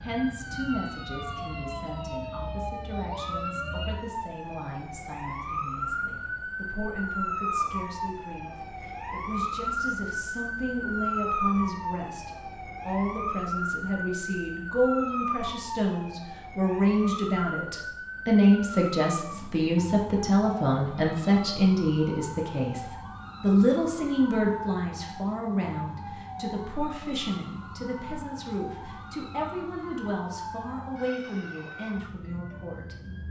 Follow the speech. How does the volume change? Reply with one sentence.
The volume of the speech goes up, then down.